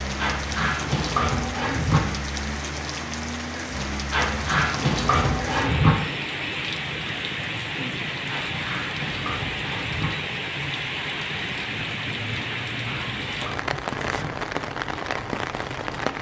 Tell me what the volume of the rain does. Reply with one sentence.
The volume of the rain stays about the same.